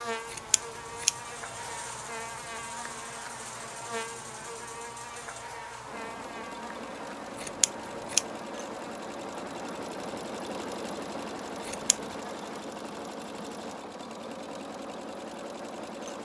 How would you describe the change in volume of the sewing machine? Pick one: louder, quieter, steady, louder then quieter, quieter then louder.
louder.